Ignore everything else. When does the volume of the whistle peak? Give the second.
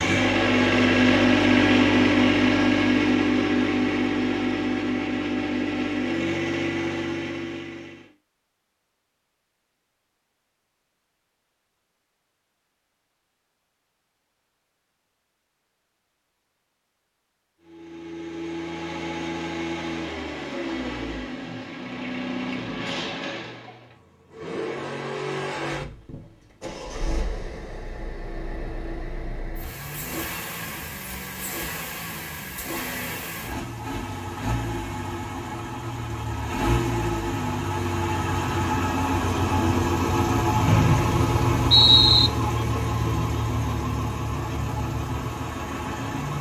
42 s.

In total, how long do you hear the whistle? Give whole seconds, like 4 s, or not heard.
2 s.